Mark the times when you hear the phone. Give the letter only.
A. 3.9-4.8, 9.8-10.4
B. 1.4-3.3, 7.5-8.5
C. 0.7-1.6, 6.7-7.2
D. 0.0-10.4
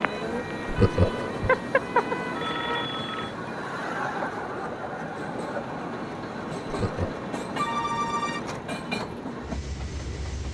B.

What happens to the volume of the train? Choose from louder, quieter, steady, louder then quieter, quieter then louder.
steady.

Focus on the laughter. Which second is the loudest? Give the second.
1 s.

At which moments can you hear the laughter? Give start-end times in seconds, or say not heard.
0.7-1.6, 6.7-7.2.